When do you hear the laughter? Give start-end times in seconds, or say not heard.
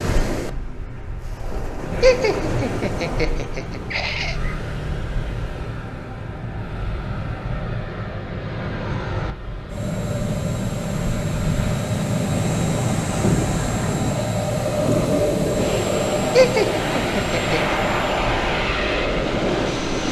2.0-4.3, 16.4-17.8.